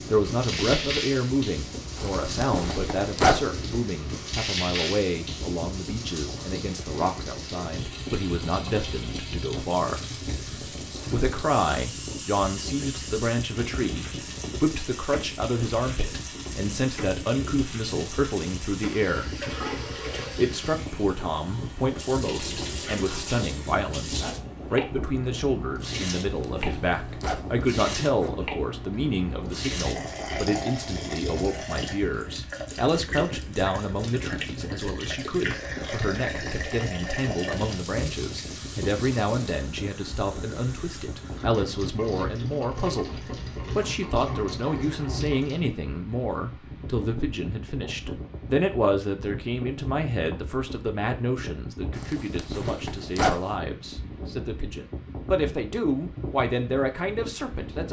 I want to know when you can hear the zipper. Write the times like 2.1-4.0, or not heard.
1.9-3.5, 26.2-28.3, 52.0-53.5.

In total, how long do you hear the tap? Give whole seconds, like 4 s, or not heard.
46 s.